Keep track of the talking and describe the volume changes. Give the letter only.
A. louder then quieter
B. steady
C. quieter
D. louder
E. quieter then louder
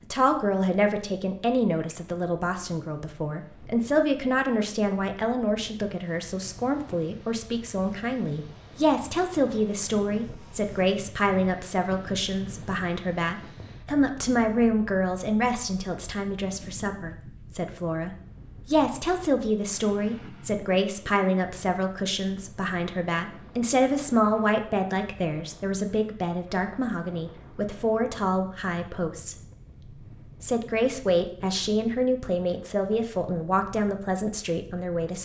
B.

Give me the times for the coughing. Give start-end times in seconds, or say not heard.
not heard.